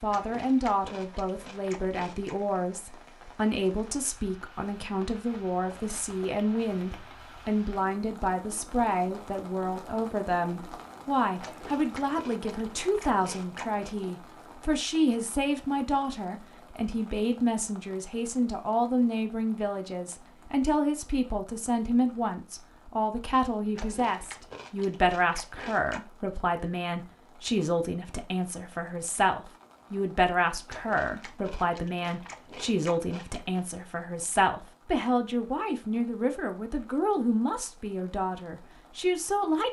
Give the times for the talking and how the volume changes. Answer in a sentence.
The talking can be heard from 0.0 to 39.6 s, at a steady volume.